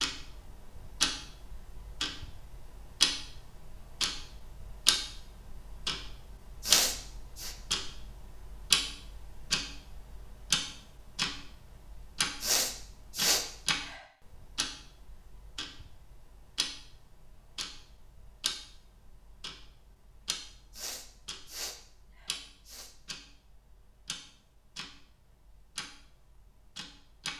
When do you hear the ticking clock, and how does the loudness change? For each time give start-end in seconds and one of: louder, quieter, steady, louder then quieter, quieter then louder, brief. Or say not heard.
0.0-27.3 quieter.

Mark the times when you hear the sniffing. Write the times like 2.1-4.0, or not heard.
6.6-7.5, 12.4-14.0, 20.7-22.9.